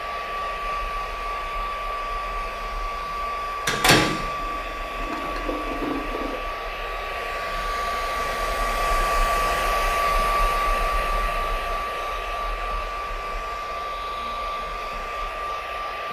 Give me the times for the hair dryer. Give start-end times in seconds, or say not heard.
0.0-16.0.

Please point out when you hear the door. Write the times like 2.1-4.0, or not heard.
3.6-4.1.